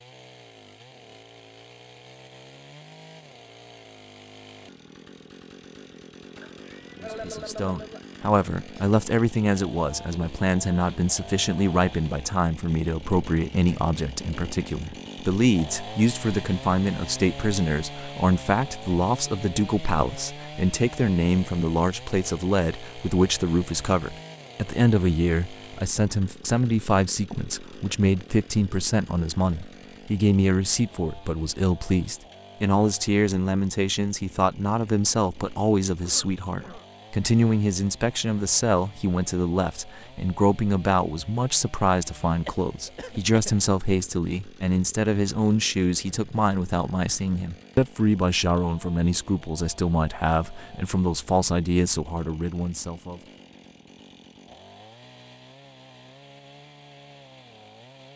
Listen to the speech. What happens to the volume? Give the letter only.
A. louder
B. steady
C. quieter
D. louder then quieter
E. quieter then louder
B.